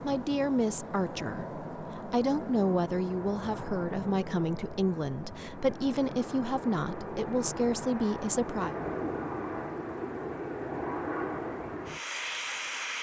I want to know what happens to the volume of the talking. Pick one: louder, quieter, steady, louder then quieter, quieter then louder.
steady.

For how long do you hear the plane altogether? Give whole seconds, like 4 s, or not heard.
13 s.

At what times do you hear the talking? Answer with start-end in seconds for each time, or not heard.
0.0-8.8.